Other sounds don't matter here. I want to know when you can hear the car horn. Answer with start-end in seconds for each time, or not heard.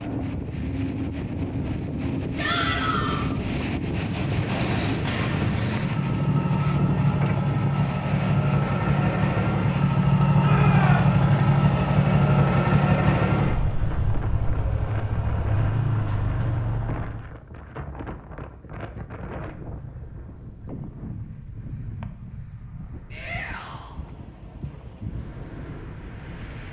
not heard.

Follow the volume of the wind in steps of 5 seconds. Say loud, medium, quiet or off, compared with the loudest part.
loud, loud, medium, medium, medium, medium.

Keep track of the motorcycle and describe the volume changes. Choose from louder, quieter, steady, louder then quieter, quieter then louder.
louder then quieter.